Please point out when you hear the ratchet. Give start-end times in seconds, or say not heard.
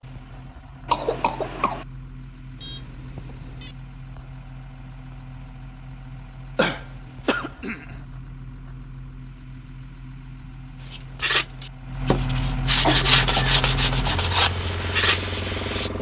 not heard.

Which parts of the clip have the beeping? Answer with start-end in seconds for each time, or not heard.
2.5-3.8.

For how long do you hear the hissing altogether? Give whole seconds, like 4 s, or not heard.
3 s.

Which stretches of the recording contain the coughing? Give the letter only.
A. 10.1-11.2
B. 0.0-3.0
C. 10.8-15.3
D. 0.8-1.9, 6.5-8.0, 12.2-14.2
D.